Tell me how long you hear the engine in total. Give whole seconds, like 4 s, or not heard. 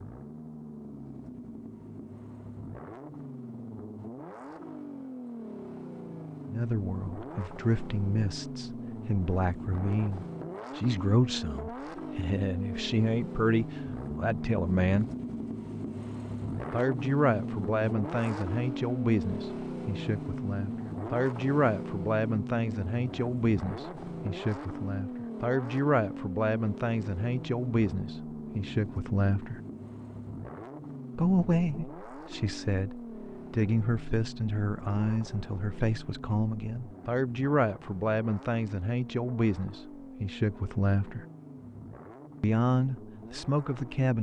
44 s.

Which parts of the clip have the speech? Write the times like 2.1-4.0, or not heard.
6.5-15.1, 16.7-29.6, 31.1-41.2, 42.4-44.1.